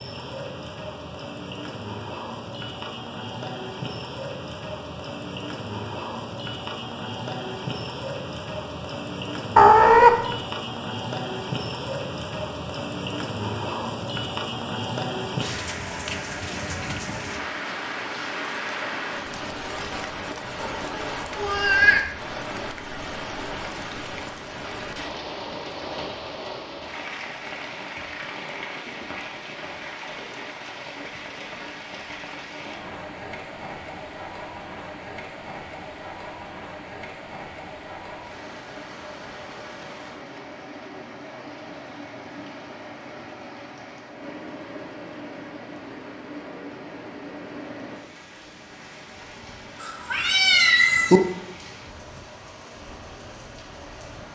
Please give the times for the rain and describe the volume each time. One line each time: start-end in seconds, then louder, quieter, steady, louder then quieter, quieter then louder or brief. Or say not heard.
0.0-54.2 quieter.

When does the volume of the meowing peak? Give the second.
10 s.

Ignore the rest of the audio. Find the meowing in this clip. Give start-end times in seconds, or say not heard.
9.6-10.2, 20.6-22.1, 49.8-51.2.